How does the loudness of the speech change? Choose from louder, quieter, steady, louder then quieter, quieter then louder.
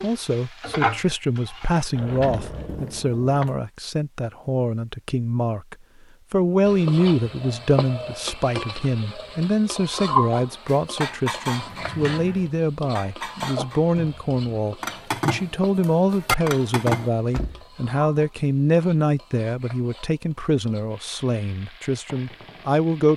steady.